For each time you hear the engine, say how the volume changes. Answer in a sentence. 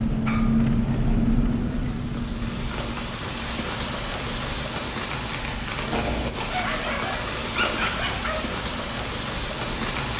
You can hear the engine from 0.0 to 10.1 s, getting quieter.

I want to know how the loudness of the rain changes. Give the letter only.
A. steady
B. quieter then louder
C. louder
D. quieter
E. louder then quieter
C.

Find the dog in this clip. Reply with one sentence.
You can hear the dog from 0.2 to 1.1 s and from 6.4 to 8.6 s.